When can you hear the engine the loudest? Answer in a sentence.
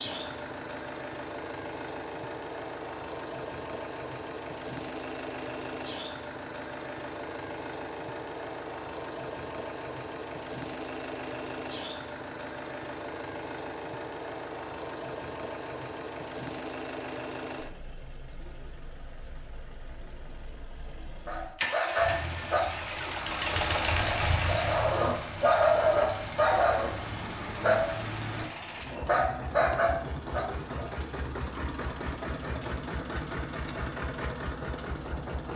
The volume of the engine peaks at 24 seconds.